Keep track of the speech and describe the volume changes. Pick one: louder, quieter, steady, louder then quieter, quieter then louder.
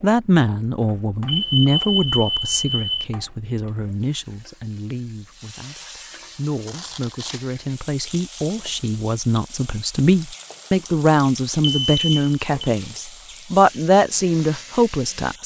quieter then louder.